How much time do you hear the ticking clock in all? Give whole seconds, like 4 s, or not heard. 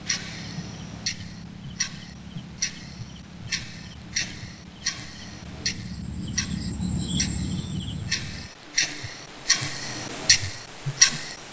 11 s.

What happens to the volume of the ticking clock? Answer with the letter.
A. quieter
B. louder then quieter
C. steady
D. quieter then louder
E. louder
E.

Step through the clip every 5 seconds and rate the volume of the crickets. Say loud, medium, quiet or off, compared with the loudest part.
medium, loud, off.